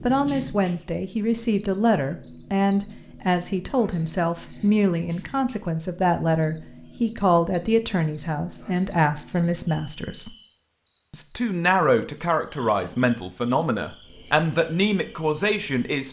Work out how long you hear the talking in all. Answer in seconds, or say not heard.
15 s.